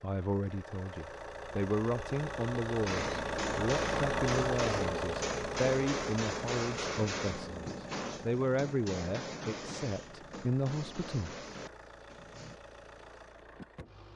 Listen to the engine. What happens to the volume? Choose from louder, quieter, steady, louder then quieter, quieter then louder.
louder then quieter.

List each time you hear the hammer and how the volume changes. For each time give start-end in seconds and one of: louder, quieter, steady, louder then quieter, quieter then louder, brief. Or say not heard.
2.9-12.6 quieter.